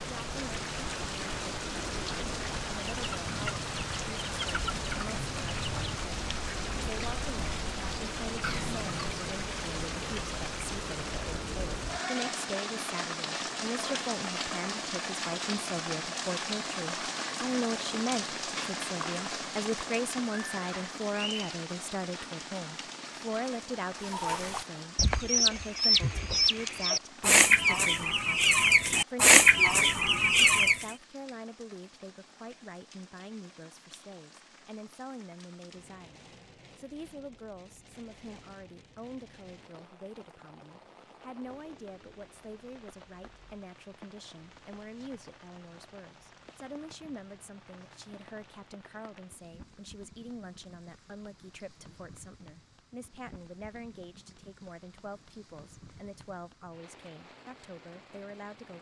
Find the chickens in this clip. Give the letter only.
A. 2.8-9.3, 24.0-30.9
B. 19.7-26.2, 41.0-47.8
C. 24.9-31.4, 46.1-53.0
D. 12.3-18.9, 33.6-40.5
A.